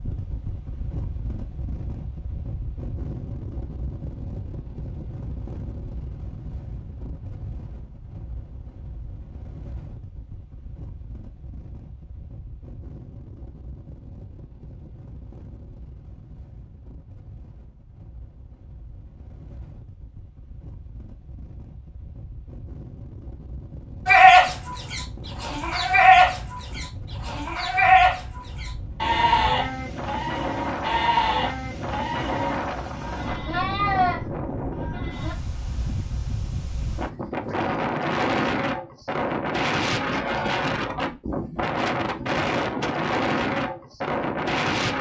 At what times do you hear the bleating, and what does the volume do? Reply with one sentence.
You can hear the bleating from 24.1 to 35.4 s, getting quieter.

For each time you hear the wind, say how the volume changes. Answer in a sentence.
The wind can be heard from 0.0 to 44.9 s, getting quieter then louder.